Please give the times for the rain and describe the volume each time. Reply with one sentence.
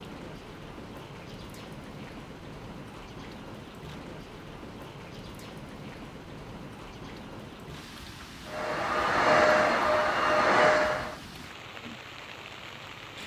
The rain can be heard from 0.0 to 13.2 s, at a steady volume.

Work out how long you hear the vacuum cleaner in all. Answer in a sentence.
You can hear the vacuum cleaner for 3 seconds altogether.